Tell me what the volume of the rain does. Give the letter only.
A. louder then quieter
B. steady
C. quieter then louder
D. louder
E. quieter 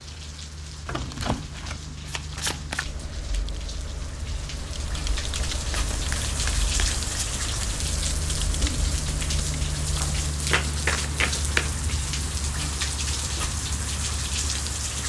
D.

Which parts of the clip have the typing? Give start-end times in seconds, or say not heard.
2.8-10.1.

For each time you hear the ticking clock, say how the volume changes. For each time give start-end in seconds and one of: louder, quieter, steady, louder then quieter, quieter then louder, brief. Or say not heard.
not heard.